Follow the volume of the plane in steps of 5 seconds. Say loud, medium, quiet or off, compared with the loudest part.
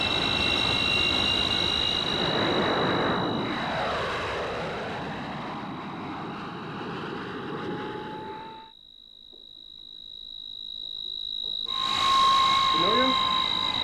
loud, medium, loud.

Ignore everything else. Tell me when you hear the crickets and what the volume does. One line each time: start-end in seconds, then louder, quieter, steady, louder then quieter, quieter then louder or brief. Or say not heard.
0.0-13.7 quieter then louder.